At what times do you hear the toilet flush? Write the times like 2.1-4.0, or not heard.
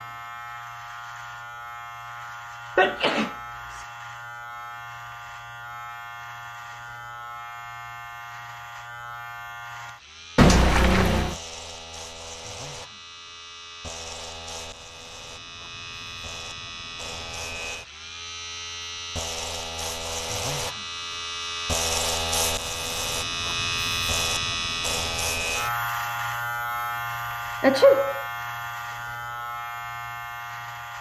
10.3-11.3.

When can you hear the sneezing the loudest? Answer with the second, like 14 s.
28 s.